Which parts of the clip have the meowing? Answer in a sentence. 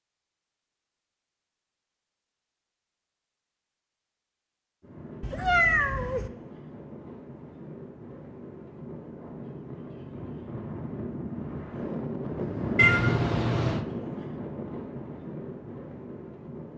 The meowing can be heard from 5.2 to 6.3 s and from 12.8 to 13.8 s.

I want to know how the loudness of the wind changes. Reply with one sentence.
The loudness of the wind goes up, then down.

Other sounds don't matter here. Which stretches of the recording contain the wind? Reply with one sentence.
The wind can be heard from 4.8 to 16.7 s.